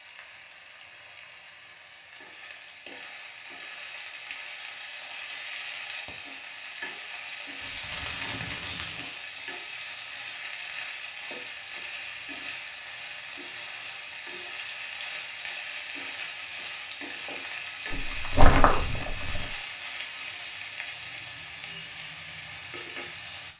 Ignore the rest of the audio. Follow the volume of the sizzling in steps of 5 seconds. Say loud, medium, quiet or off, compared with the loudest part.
medium, loud, loud, loud, loud.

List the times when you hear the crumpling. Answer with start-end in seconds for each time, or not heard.
7.6-9.2, 17.9-19.5.